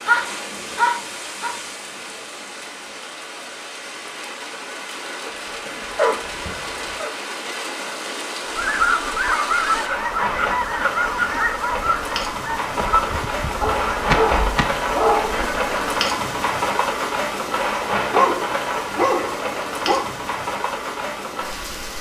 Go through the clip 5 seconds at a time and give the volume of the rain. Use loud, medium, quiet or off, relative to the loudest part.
medium, medium, loud, loud, medium.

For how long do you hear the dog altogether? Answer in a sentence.
You can hear the dog for 9 seconds altogether.